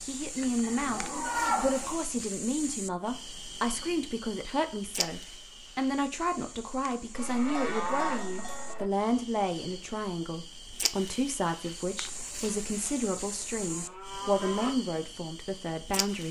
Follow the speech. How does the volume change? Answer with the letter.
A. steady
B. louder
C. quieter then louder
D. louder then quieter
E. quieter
A.